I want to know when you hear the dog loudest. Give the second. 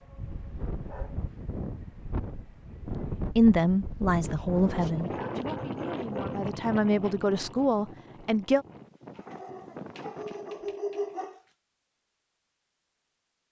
11 s.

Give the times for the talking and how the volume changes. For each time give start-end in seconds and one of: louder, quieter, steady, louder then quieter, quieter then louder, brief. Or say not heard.
3.1-8.7 quieter then louder.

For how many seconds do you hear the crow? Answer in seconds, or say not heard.
not heard.